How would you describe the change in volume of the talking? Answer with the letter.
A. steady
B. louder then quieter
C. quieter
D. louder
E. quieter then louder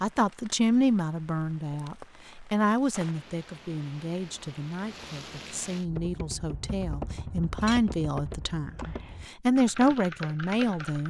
E.